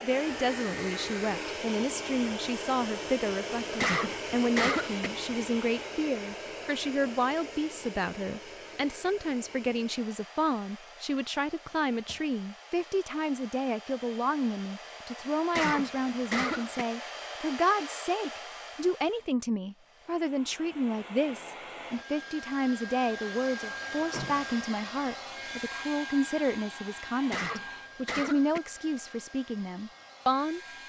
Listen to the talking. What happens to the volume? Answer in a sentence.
The loudness of the talking stays about the same.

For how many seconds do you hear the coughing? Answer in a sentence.
You can hear the coughing for 4 seconds altogether.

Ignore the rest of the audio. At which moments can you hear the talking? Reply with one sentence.
You can hear the talking from 0.0 to 30.6 s.